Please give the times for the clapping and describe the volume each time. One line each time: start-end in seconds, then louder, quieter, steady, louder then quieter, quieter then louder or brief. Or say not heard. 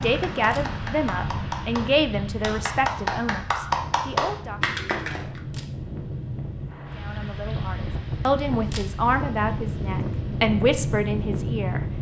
0.0-5.4 louder.